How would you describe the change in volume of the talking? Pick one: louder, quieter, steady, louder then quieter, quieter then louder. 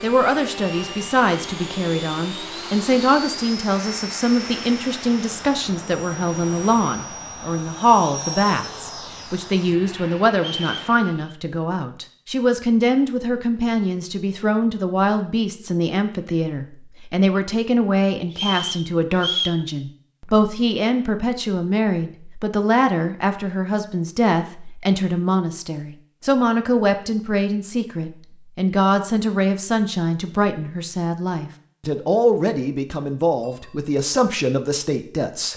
steady.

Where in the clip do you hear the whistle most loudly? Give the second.
19 s.